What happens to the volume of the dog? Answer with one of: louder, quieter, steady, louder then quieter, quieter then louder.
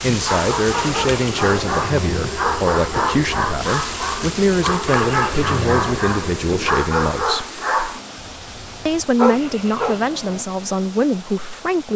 steady.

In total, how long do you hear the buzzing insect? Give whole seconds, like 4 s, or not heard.
7 s.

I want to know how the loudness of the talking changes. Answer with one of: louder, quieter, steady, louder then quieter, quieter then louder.
steady.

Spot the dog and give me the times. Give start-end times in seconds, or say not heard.
0.0-10.0.